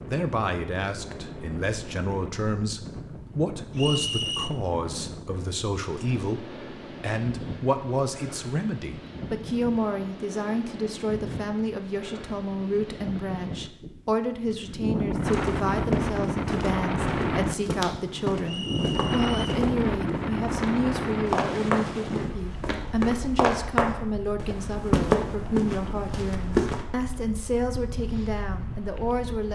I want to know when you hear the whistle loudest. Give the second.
4 s.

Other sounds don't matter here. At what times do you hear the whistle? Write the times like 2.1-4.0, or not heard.
3.8-4.5, 18.4-19.6.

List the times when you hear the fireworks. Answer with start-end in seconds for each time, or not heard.
not heard.